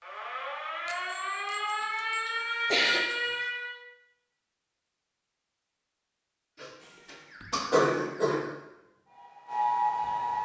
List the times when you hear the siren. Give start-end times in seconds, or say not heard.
0.0-3.8, 6.8-10.4.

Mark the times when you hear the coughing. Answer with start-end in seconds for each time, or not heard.
1.8-3.0, 6.6-8.4.